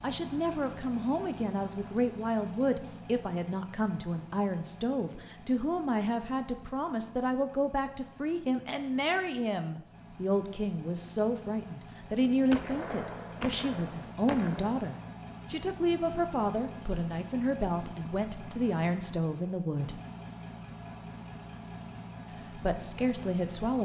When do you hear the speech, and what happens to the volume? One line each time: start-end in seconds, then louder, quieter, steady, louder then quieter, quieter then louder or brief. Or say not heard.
0.0-20.0 steady
22.5-23.7 brief.